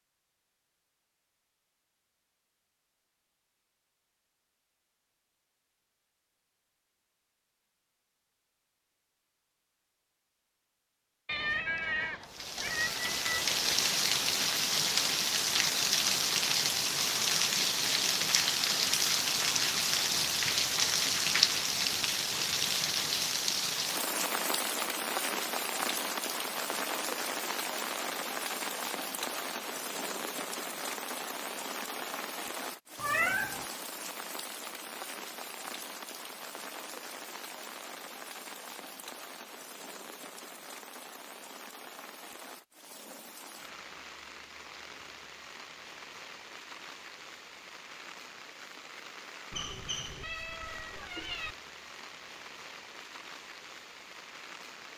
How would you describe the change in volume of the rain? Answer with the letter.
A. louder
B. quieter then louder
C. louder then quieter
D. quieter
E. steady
D.